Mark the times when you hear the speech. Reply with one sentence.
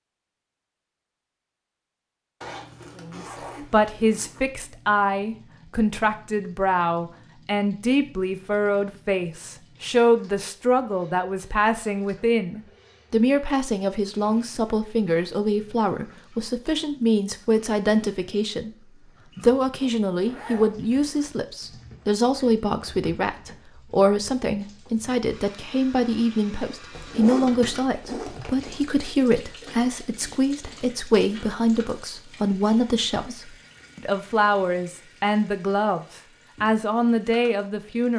The speech can be heard from 3.0 to 18.7 s and from 19.4 to 38.1 s.